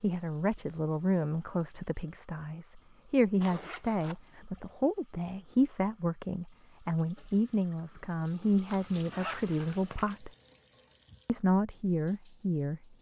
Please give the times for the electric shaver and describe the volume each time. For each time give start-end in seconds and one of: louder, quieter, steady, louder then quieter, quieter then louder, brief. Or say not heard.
not heard.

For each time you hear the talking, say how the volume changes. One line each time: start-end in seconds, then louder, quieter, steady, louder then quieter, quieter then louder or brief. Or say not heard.
0.0-10.3 steady
11.2-12.8 brief.